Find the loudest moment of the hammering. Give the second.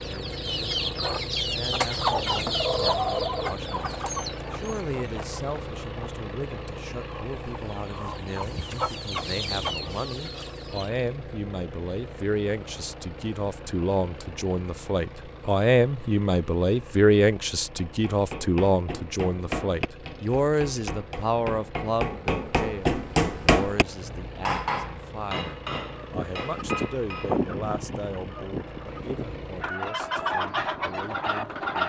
23 s.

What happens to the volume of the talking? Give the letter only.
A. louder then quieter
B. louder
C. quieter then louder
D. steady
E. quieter
A.